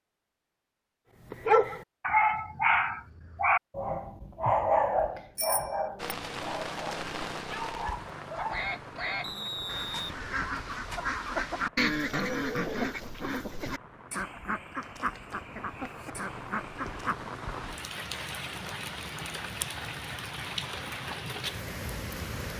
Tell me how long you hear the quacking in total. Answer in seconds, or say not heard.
9 s.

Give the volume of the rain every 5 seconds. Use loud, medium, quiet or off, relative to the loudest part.
off, loud, quiet, loud, loud.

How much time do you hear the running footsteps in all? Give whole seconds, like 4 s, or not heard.
not heard.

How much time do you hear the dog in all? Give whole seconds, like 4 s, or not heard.
7 s.